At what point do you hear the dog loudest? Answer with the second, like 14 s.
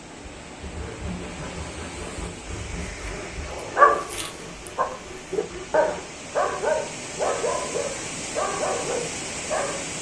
4 s.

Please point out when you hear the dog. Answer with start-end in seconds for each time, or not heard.
2.9-9.9.